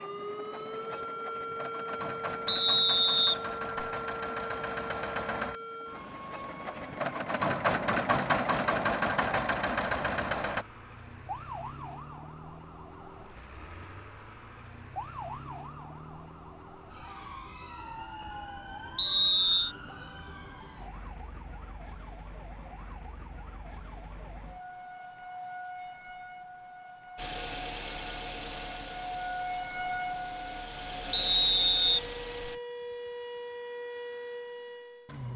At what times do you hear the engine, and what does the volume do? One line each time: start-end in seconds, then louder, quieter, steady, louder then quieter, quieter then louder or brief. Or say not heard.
0.0-10.7 louder
27.1-32.6 quieter then louder.